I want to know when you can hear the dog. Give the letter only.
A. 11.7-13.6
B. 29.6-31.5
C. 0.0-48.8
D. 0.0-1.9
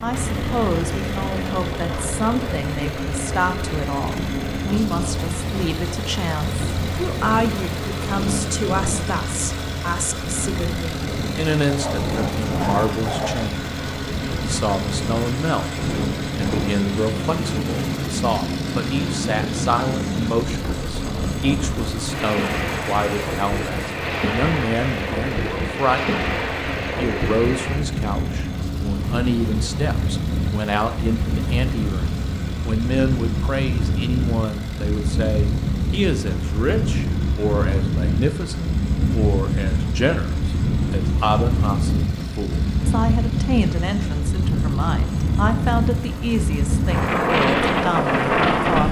A.